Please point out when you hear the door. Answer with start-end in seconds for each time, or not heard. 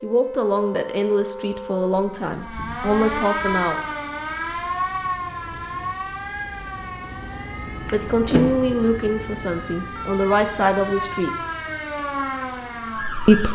7.8-8.6.